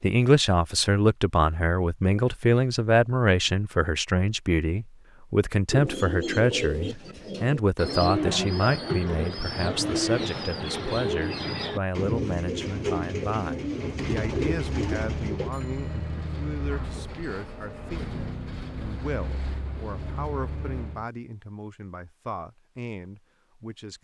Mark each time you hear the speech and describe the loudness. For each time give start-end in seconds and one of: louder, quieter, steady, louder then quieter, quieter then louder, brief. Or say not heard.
0.0-24.0 quieter.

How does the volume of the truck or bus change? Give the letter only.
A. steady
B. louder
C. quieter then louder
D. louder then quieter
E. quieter
A.